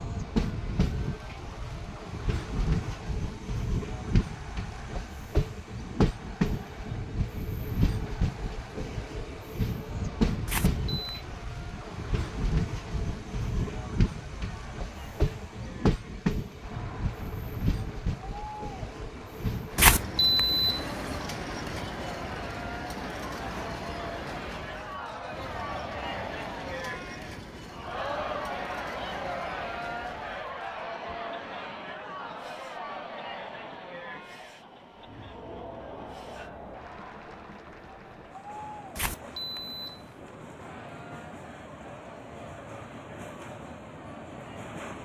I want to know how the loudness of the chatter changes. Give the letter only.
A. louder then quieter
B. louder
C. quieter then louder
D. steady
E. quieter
A.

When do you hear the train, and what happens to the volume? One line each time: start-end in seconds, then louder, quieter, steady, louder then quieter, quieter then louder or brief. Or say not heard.
0.0-45.0 quieter.